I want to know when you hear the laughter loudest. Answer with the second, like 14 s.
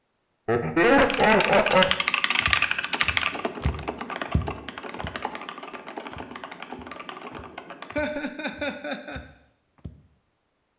1 s.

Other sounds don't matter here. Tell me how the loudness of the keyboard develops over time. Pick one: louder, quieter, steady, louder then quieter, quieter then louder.
quieter.